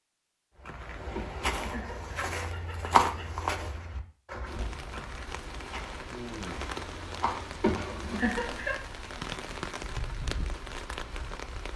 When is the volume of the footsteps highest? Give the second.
3 s.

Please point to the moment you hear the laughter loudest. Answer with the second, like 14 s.
8 s.